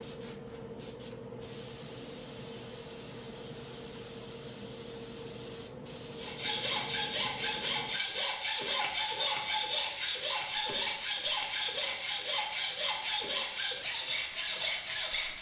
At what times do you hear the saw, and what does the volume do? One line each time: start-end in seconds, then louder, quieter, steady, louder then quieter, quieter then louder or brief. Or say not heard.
6.2-15.3 steady.